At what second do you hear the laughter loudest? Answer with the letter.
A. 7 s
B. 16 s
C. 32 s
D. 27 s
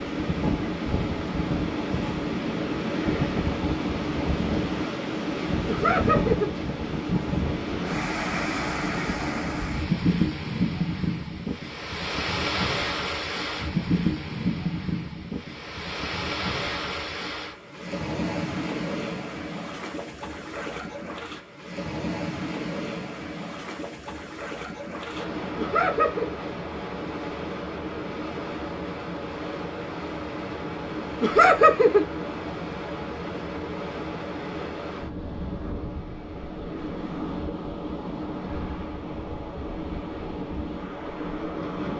C.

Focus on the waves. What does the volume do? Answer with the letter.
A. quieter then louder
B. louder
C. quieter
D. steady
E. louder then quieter
C.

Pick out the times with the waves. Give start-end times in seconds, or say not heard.
0.0-41.9.